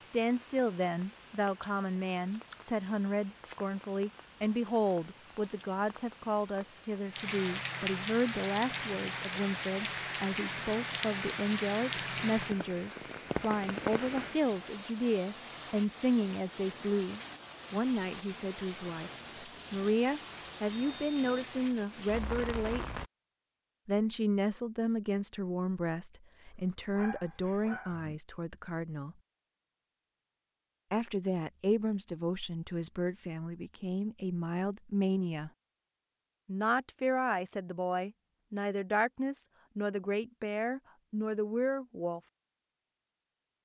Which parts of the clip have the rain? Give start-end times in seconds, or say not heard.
0.0-23.1.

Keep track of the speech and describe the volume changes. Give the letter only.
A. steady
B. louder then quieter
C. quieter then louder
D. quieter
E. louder
A.